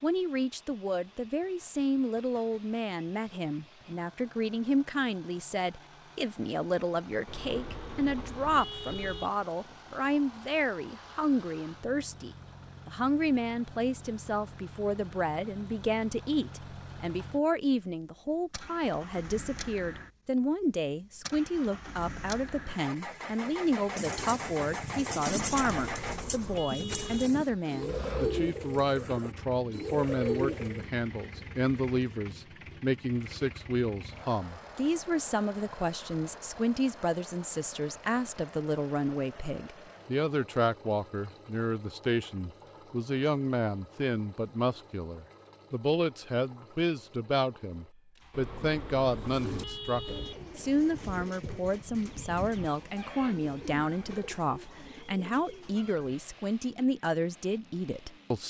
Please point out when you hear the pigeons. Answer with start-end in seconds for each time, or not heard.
23.9-30.9, 49.1-56.2.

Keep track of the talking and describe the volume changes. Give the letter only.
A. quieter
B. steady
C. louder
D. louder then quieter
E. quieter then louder
B.